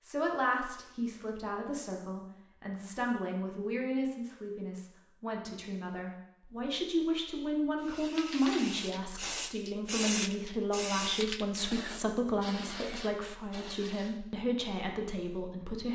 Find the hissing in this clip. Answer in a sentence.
You can hear the hissing from 7.8 to 14.2 s.